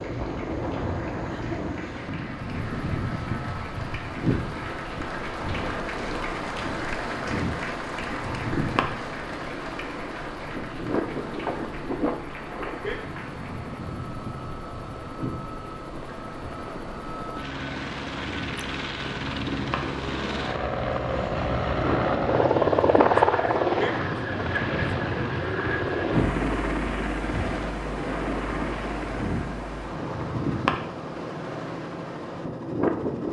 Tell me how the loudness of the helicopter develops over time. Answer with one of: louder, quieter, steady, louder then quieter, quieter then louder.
louder then quieter.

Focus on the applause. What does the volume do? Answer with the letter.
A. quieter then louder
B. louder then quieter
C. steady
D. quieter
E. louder
B.